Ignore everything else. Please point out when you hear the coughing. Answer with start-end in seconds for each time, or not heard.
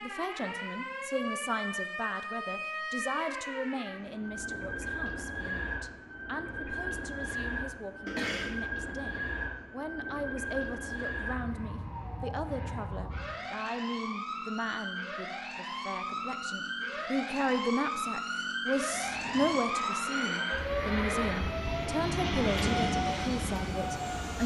8.1-8.6, 22.5-22.9.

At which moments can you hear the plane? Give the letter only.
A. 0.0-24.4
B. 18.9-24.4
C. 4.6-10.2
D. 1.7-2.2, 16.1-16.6
B.